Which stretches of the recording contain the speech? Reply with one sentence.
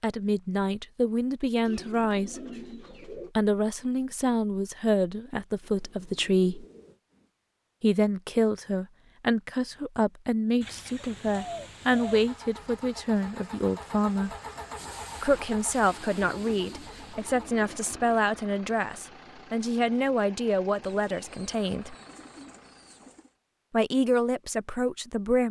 You can hear the speech from 0.0 to 2.4 s, from 3.1 to 6.7 s, from 7.8 to 14.3 s, from 15.2 to 21.9 s and from 23.7 to 25.4 s.